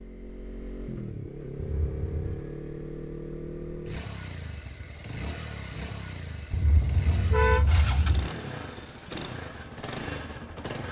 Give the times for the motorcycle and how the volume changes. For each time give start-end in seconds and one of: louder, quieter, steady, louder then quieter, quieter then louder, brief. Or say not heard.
0.0-10.8 steady.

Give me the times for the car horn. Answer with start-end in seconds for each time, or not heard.
1.6-2.4, 6.5-8.3.